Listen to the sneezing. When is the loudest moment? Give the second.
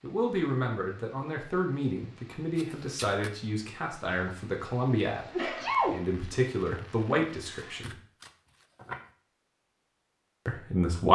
6 s.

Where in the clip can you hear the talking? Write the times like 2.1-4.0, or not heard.
0.0-8.0, 10.4-11.1.